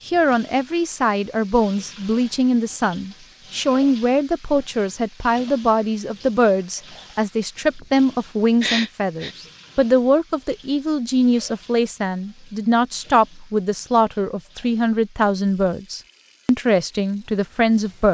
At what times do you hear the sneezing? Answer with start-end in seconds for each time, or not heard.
8.6-9.3.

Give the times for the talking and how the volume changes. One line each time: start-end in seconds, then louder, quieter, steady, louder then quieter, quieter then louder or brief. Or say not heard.
0.1-18.1 steady.